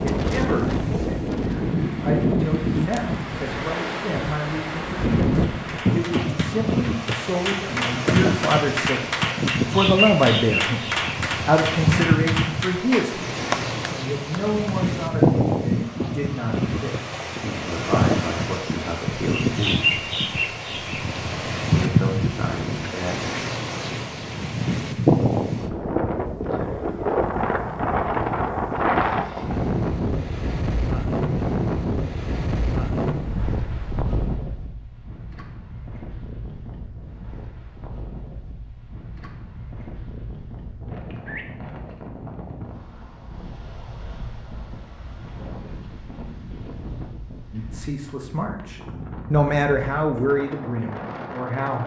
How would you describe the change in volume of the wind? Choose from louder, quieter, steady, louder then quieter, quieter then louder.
quieter.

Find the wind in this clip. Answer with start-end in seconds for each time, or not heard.
0.0-51.8.